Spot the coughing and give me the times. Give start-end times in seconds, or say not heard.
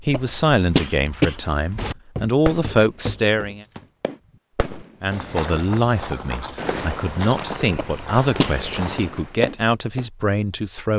0.1-1.9, 7.8-8.7.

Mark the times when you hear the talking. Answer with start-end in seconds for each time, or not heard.
0.0-3.6, 5.0-10.9.